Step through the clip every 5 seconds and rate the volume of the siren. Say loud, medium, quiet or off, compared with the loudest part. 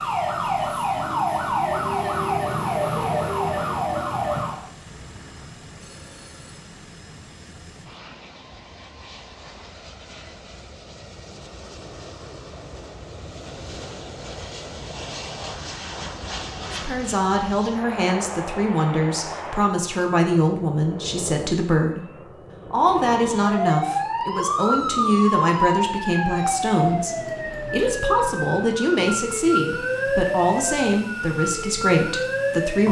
loud, off, off, off, loud, loud, loud.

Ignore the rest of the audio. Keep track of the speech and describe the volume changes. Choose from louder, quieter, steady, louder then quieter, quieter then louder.
steady.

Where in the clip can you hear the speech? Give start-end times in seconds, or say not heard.
16.7-32.8.